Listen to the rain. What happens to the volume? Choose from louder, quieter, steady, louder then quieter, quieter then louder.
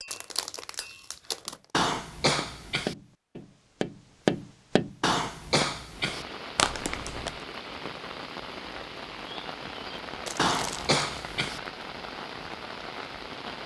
steady.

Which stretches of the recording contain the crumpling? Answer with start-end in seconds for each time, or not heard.
0.1-1.6, 6.5-7.3, 10.2-11.0.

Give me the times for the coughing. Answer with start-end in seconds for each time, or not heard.
1.7-3.0, 5.0-6.2, 10.3-11.6.